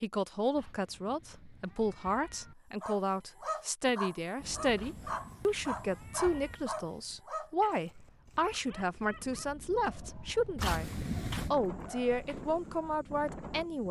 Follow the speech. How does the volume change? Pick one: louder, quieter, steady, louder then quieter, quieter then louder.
steady.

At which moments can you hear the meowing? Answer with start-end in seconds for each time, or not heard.
0.6-2.5, 4.8-6.7, 10.6-11.5.